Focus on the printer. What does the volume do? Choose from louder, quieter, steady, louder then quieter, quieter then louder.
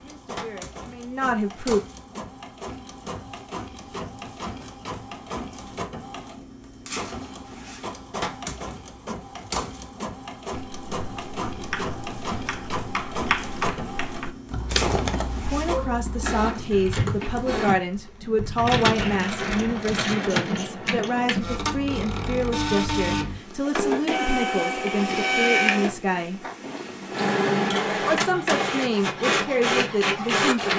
louder.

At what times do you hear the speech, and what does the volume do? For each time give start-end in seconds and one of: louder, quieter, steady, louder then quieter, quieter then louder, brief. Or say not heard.
0.0-1.8 brief
15.4-26.4 steady
28.0-30.7 brief.